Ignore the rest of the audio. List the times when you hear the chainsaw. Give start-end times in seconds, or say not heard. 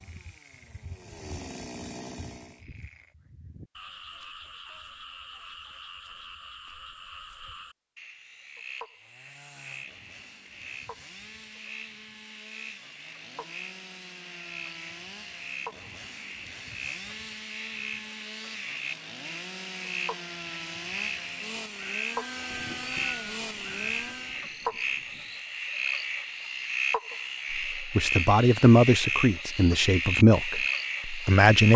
0.0-2.6, 8.9-24.4.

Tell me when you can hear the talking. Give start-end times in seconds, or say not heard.
27.8-31.7.